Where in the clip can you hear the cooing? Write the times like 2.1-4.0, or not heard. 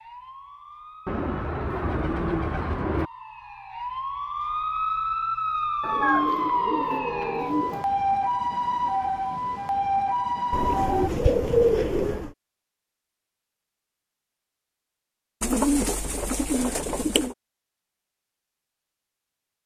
1.1-3.1, 5.8-7.8, 10.5-12.3, 15.4-17.4.